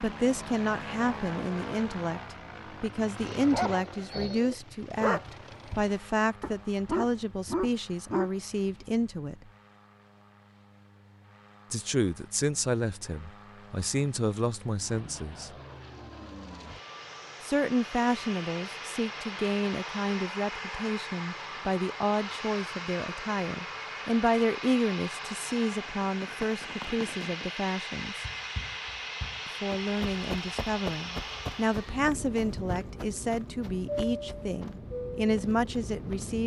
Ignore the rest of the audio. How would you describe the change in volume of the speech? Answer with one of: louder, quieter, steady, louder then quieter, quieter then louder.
steady.